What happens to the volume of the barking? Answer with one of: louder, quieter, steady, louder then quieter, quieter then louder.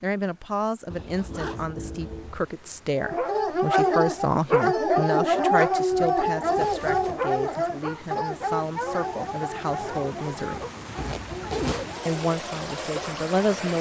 quieter.